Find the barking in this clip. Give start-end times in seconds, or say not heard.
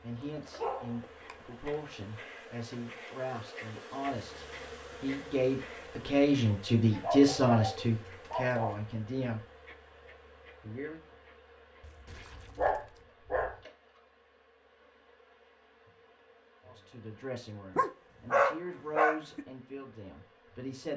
0.2-1.8, 6.9-8.8, 11.8-13.6, 17.8-19.4.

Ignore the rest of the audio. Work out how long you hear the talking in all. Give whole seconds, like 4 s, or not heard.
14 s.